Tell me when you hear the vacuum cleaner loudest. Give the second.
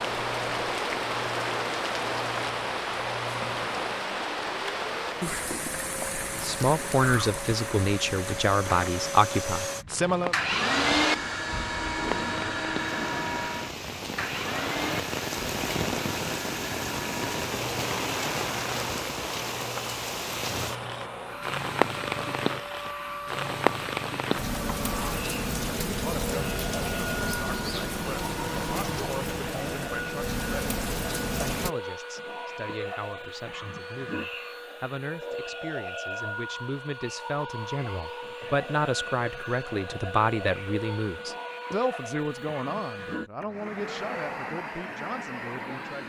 11 s.